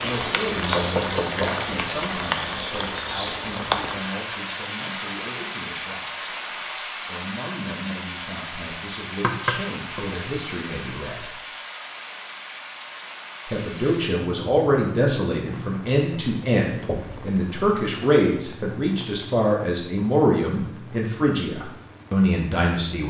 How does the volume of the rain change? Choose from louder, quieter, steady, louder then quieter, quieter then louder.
quieter.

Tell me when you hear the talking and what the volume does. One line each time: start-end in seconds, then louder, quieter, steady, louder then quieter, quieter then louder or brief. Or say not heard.
0.0-6.3 quieter
7.0-11.4 quieter then louder
13.4-23.0 steady.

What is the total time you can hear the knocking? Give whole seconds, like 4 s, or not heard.
2 s.